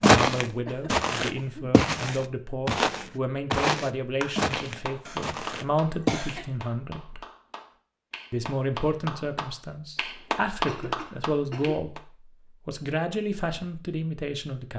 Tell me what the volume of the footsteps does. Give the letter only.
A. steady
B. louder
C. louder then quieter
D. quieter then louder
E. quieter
E.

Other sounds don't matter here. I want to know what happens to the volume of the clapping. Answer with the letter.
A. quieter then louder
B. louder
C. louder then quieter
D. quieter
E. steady
A.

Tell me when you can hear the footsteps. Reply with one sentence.
The footsteps can be heard from 0.0 to 6.2 s.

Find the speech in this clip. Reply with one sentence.
You can hear the speech from 0.0 to 7.2 s, from 8.3 to 12.0 s and from 12.7 to 14.7 s.